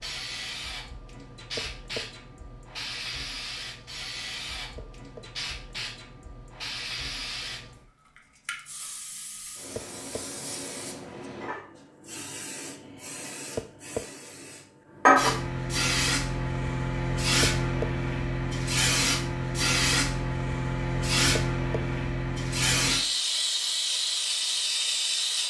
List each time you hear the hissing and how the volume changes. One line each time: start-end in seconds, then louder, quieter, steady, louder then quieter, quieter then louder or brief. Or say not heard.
0.0-25.4 louder.